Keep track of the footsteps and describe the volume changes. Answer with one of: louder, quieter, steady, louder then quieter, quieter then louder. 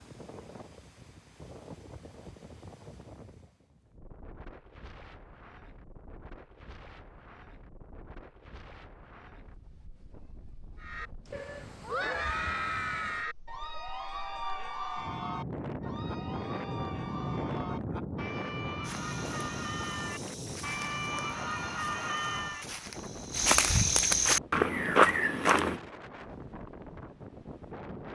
louder.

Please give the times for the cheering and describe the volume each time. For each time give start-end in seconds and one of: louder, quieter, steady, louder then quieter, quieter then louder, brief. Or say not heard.
10.8-22.6 quieter then louder.